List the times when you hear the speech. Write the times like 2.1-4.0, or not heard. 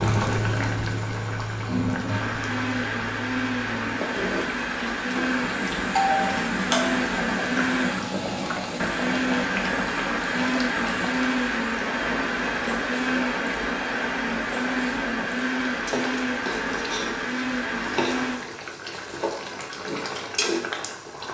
not heard.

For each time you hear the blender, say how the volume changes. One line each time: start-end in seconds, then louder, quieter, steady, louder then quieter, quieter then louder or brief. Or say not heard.
2.0-18.4 steady.